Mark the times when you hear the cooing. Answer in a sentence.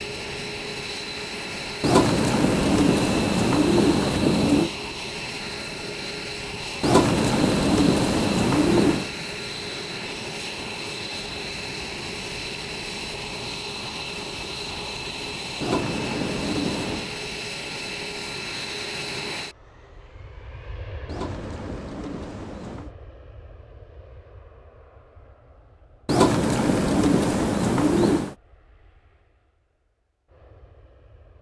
You can hear the cooing from 1.8 to 4.7 s, from 6.8 to 9.1 s, from 15.6 to 17.1 s, from 21.1 to 22.9 s and from 26.1 to 28.4 s.